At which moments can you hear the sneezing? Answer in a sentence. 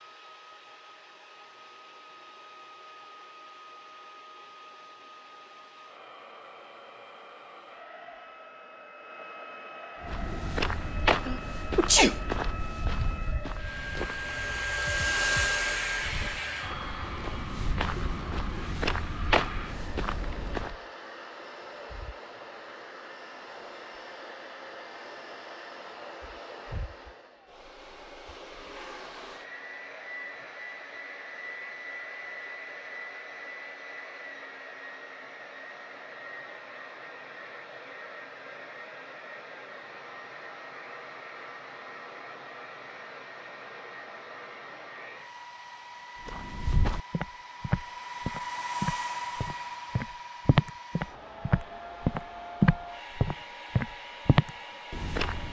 The sneezing can be heard from 11.2 to 12.2 s.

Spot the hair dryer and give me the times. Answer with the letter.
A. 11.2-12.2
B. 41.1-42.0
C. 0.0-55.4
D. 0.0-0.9
C.